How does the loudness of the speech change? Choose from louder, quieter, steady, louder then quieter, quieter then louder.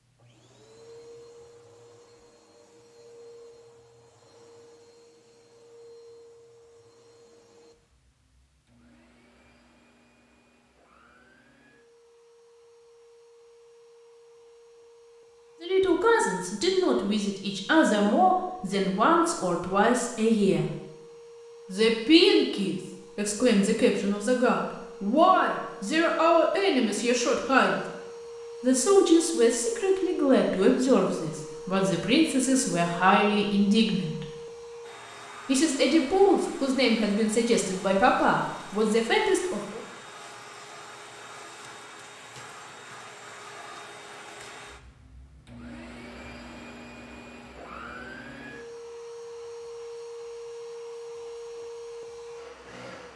steady.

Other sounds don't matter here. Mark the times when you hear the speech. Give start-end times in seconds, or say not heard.
15.6-20.7, 21.7-27.8, 28.6-34.2, 35.5-39.8.